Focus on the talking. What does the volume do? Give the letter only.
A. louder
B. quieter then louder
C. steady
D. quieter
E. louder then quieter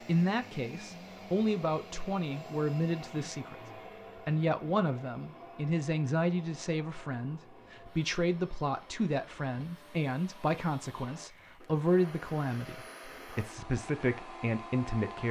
C.